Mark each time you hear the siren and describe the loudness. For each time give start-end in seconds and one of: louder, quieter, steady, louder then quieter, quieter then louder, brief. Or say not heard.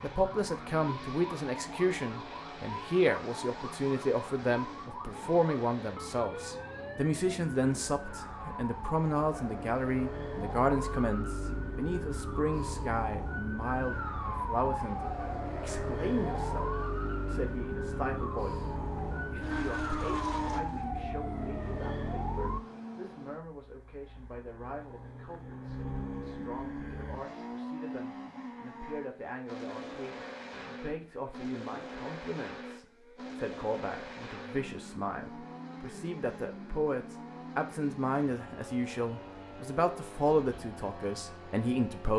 0.0-22.6 louder.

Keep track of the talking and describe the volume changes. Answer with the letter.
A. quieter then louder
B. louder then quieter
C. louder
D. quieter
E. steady
A.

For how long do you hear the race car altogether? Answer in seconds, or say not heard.
42 s.